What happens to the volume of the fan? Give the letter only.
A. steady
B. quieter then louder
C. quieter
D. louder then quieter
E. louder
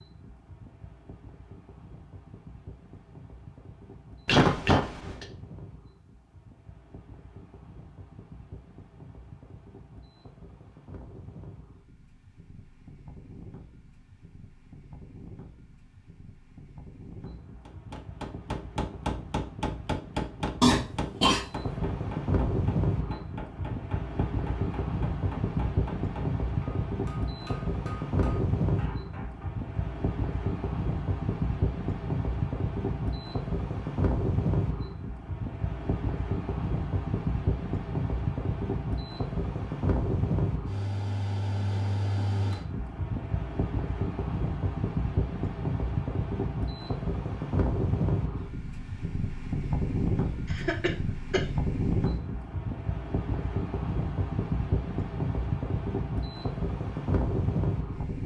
E.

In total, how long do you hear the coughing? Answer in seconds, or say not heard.
3 s.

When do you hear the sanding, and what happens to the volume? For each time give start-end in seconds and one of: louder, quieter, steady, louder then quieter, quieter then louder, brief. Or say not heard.
not heard.